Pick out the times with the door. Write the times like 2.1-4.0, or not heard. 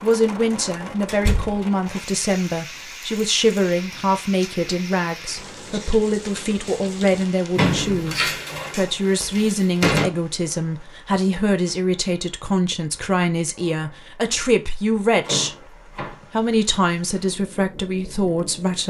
1.1-1.6, 7.5-10.1, 15.2-16.2.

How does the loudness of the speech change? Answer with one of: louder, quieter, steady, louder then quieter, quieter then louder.
steady.